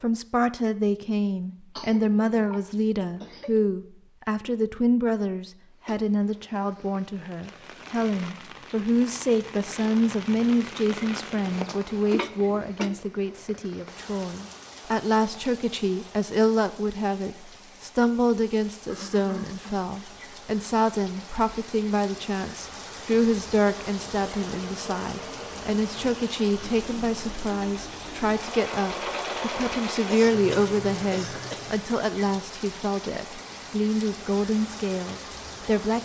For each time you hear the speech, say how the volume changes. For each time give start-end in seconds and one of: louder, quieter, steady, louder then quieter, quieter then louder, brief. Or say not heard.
0.0-36.0 steady.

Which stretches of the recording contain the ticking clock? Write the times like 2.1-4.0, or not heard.
not heard.